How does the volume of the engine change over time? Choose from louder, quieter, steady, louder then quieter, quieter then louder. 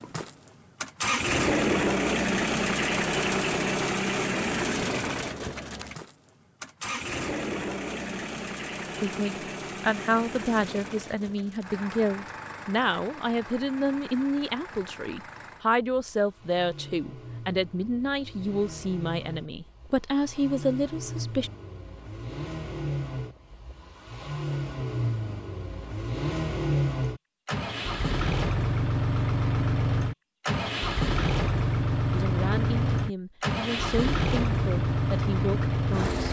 quieter then louder.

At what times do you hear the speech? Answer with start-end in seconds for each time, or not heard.
9.0-21.5, 32.1-36.2.